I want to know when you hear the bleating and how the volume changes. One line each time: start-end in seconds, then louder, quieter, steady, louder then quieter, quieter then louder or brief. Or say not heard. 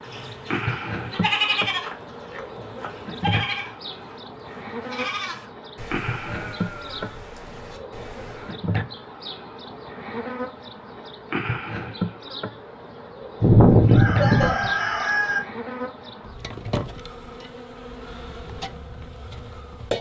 0.0-8.6 quieter.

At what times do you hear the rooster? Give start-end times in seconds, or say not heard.
13.4-15.4.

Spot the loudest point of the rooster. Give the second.
14 s.